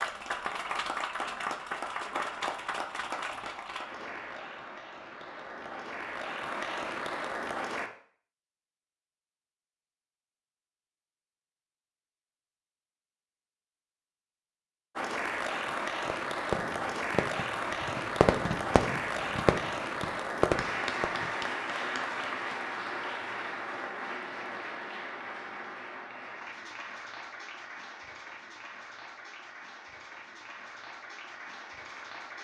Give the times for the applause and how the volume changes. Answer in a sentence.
The applause can be heard from 0.0 to 7.9 s, getting quieter then louder; and from 14.9 to 32.3 s, getting quieter.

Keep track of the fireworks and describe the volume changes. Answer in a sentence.
The loudness of the fireworks stays about the same.